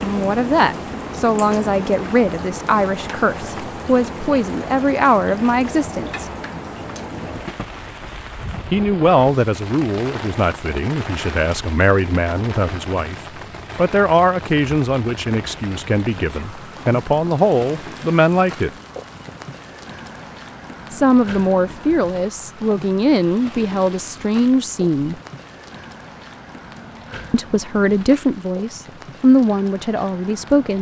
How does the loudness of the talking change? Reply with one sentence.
The loudness of the talking stays about the same.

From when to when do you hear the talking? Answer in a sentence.
The talking can be heard from 0.0 to 6.3 s, from 8.7 to 13.2 s, from 13.8 to 18.7 s, from 20.9 to 25.1 s and from 27.3 to 30.7 s.